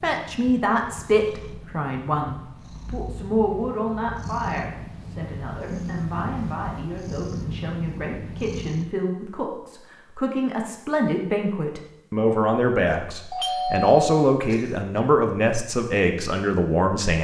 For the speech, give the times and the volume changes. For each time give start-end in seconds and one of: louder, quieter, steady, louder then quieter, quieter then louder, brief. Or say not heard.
0.0-17.1 quieter then louder.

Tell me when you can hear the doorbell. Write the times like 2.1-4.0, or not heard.
13.3-14.8.